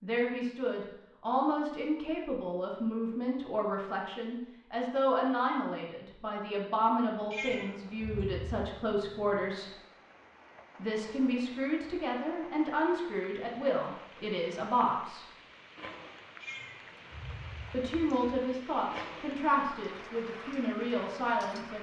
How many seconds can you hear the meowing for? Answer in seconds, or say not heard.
3 s.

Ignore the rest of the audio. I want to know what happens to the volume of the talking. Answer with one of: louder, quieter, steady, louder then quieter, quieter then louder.
steady.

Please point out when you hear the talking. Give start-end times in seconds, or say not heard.
0.0-9.7, 10.8-15.2, 17.7-21.7.